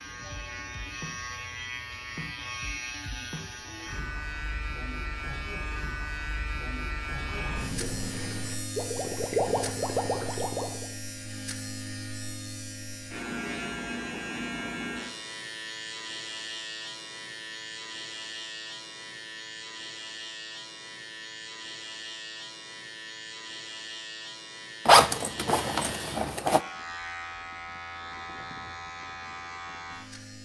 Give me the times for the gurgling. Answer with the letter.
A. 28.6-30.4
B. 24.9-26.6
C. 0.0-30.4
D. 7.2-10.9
D.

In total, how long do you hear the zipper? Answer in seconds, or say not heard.
2 s.